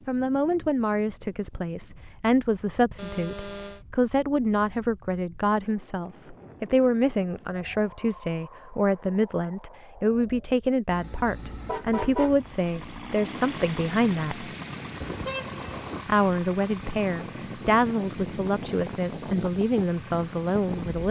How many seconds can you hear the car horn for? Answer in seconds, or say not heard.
3 s.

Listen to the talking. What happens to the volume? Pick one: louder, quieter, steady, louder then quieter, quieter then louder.
steady.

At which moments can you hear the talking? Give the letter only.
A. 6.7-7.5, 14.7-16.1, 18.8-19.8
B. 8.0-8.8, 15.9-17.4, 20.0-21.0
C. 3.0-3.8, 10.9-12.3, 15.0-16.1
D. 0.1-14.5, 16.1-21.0
D.